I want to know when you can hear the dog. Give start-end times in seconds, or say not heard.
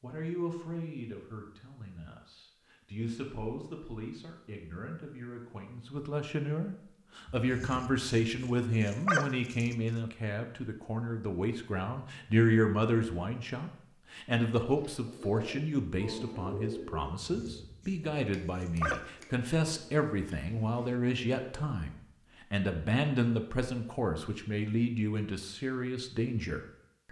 7.3-9.8, 17.2-19.1.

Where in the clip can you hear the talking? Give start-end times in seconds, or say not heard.
0.0-27.0.